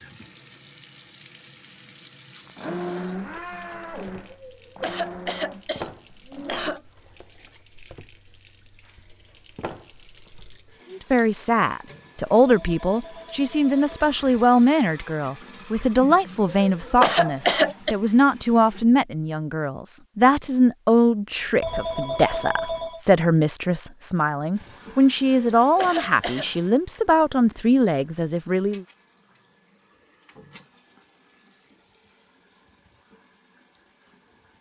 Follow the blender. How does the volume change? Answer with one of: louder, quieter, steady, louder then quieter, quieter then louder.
quieter.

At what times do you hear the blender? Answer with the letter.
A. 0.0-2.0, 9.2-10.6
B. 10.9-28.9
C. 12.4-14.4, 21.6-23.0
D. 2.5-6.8
D.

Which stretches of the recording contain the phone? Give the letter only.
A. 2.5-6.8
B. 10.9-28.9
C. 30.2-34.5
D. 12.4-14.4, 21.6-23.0
D.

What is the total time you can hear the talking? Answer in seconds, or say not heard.
18 s.